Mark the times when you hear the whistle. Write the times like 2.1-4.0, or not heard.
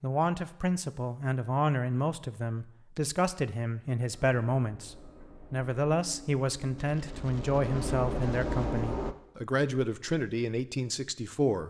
not heard.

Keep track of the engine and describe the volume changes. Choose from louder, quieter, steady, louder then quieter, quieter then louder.
louder.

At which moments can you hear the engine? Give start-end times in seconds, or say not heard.
4.1-9.2.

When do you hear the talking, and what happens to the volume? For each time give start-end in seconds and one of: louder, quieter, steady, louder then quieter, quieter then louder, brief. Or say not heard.
0.0-11.6 steady.